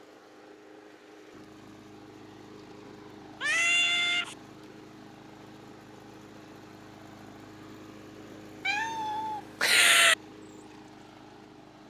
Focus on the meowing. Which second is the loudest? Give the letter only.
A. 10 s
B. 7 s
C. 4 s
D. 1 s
A.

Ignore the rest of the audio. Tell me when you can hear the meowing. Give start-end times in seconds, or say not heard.
3.4-4.3, 8.7-10.2.